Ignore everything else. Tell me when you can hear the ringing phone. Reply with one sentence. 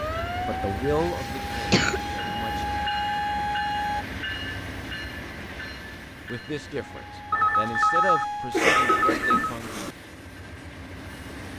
The ringing phone can be heard from 7.3 to 9.6 s.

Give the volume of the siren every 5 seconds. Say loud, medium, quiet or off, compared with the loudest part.
loud, loud, off.